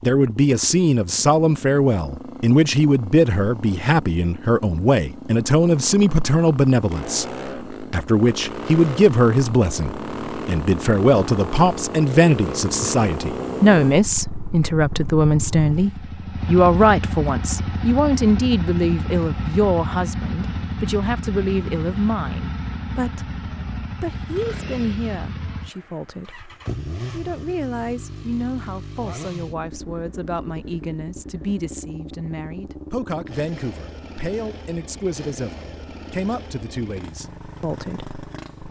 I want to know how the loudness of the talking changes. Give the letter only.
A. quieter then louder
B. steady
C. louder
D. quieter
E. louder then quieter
D.